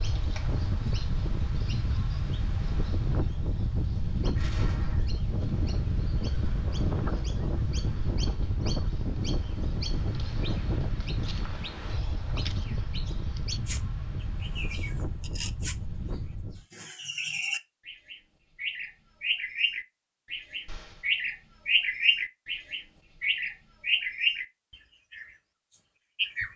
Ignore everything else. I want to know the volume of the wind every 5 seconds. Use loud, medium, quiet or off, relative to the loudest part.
loud, loud, loud, medium, off, off.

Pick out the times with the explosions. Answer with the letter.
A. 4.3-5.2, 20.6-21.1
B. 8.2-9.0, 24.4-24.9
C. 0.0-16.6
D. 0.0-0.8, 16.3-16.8
A.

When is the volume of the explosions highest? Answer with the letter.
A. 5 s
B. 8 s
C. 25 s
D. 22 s
A.